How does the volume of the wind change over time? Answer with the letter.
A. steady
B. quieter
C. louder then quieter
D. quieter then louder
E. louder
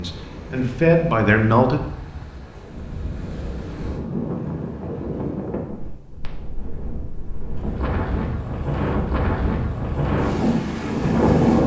E.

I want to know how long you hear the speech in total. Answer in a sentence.
The speech can be heard for 2 seconds in total.